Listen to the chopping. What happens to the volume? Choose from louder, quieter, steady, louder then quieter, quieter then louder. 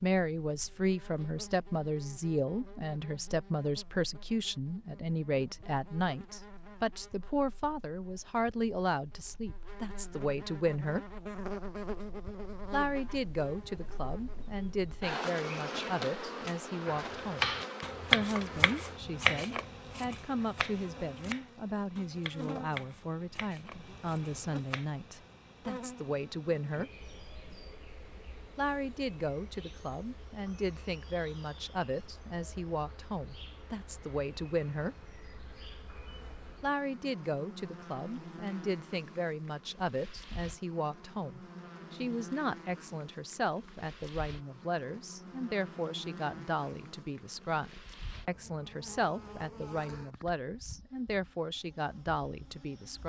quieter.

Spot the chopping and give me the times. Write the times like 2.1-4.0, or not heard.
16.9-24.9.